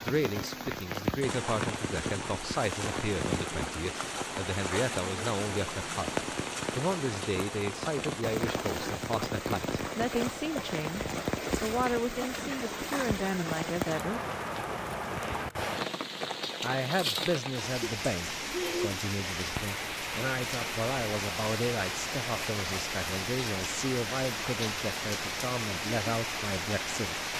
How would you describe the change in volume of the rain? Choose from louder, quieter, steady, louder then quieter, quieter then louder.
steady.